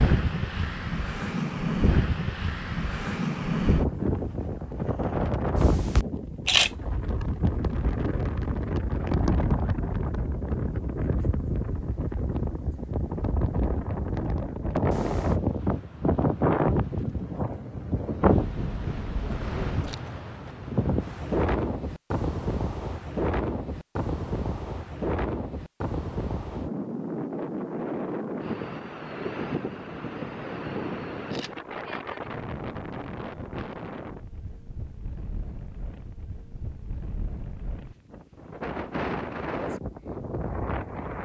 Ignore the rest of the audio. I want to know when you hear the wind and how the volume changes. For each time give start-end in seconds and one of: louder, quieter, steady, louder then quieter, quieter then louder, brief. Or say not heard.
0.0-41.2 quieter.